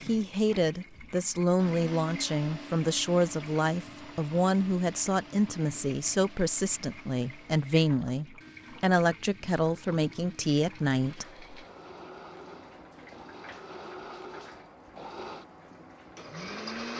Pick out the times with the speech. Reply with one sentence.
You can hear the speech from 0.0 to 11.4 s.